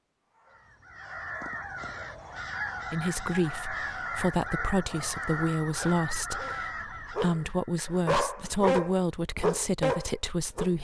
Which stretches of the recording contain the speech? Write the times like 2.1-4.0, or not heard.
2.9-10.7.